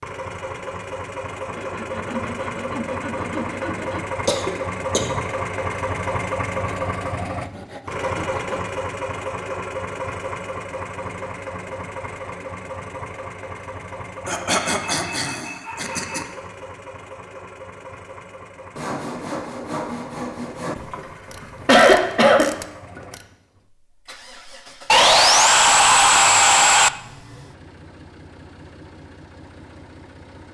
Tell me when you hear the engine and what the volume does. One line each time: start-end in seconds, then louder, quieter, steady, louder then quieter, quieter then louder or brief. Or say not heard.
0.0-30.5 quieter.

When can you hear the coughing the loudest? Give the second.
22 s.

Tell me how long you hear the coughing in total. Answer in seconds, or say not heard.
5 s.